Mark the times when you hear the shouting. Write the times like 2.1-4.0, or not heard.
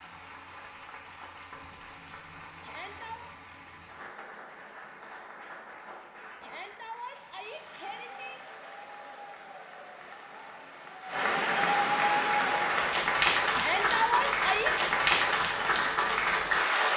2.6-3.3, 6.4-8.4, 13.5-14.8.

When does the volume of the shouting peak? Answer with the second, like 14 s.
14 s.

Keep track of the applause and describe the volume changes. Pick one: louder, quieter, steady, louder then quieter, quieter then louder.
louder.